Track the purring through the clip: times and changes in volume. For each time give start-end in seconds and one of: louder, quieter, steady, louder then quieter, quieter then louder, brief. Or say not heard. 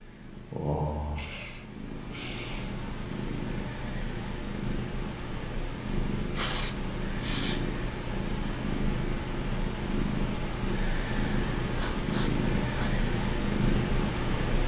0.0-14.6 louder.